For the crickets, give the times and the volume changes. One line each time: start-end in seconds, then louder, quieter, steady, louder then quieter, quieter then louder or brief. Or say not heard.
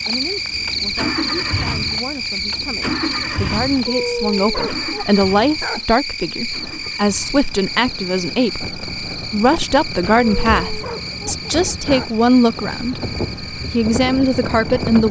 0.0-15.0 quieter.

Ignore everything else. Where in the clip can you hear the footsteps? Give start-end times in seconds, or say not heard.
not heard.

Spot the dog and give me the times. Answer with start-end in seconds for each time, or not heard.
3.9-5.8, 10.2-12.2.